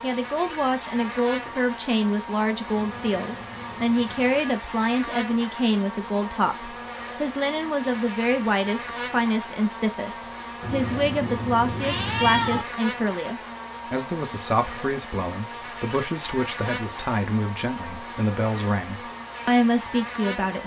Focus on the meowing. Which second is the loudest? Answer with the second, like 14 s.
12 s.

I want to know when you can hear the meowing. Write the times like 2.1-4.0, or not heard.
2.7-4.5, 10.6-12.7.